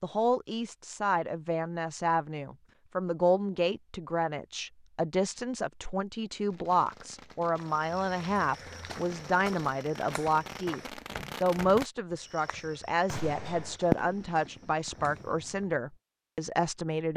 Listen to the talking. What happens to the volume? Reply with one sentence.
The volume of the talking stays about the same.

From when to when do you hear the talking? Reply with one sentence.
You can hear the talking from 0.0 to 17.1 s.